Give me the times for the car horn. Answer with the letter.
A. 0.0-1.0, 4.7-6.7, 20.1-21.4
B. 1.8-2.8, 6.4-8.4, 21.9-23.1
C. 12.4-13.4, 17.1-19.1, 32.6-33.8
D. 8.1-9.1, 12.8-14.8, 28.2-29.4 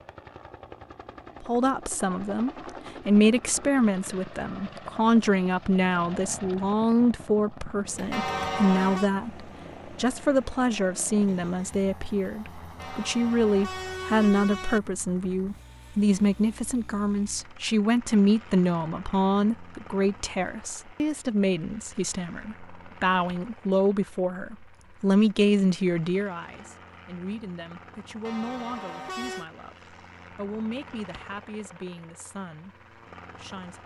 D.